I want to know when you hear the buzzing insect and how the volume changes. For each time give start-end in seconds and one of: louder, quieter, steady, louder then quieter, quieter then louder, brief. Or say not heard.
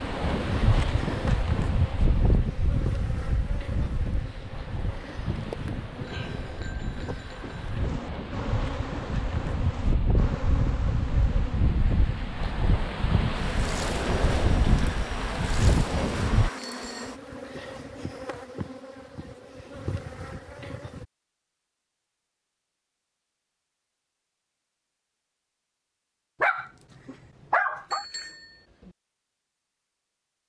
0.0-21.1 steady.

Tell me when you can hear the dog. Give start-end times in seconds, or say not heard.
26.4-28.1.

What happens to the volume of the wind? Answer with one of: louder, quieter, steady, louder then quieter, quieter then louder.
quieter then louder.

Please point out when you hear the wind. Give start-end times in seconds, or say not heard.
0.0-16.5.